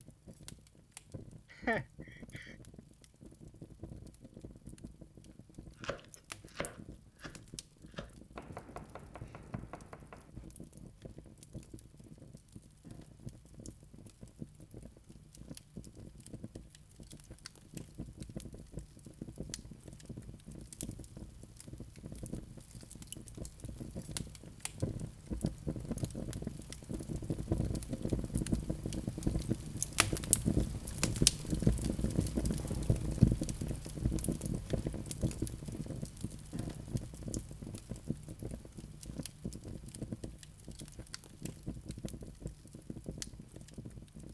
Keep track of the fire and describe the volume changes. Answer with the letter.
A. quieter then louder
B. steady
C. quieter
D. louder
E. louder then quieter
E.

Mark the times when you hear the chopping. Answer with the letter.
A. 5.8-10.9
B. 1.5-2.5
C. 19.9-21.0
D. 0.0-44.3
A.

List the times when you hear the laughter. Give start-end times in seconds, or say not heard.
1.5-2.5.